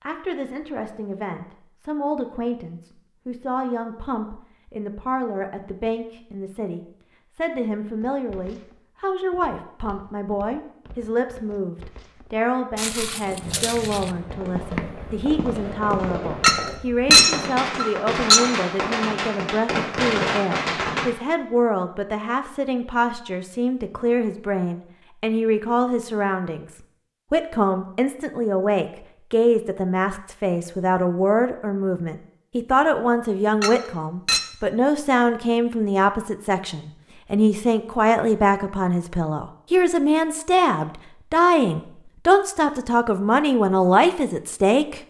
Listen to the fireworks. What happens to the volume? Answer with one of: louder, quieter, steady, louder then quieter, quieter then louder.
louder.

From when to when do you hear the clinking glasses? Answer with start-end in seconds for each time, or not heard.
16.4-18.4, 33.6-34.5.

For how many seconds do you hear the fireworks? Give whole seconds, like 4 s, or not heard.
8 s.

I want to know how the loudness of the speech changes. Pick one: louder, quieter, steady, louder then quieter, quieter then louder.
louder.